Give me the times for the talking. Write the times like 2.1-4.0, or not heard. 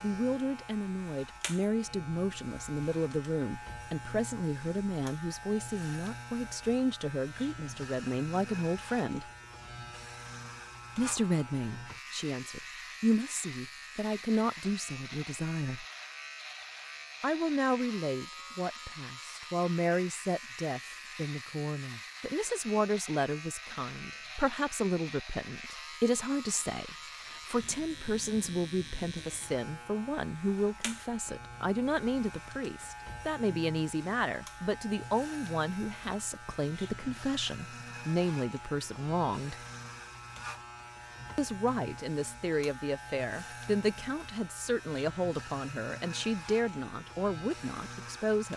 0.0-9.2, 10.9-15.8, 17.2-39.5, 41.4-48.5.